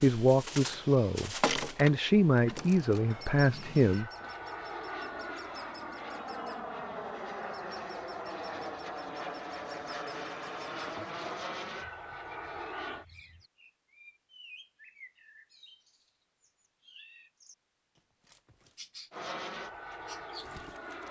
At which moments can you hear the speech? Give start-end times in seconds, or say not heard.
0.0-4.1.